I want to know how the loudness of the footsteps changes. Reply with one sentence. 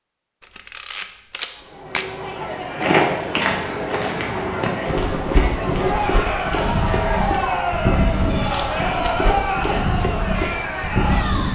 The loudness of the footsteps stays about the same.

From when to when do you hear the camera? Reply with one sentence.
The camera can be heard from 0.4 to 2.0 s and from 8.5 to 9.2 s.